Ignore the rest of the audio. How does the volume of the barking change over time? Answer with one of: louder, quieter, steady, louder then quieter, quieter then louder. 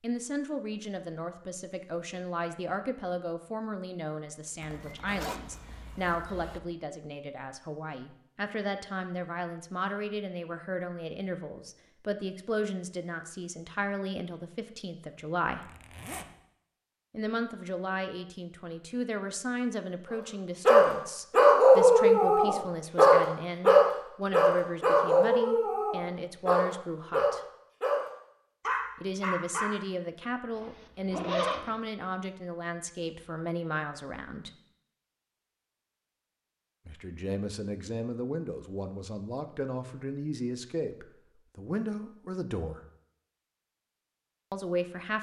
quieter.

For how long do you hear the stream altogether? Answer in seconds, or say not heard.
not heard.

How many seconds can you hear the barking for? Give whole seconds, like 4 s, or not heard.
9 s.